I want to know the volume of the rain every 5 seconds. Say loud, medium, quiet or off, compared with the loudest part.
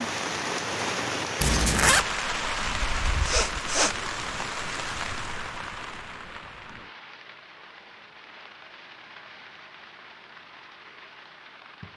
loud, medium, quiet.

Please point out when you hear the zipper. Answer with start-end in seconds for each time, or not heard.
1.4-2.0.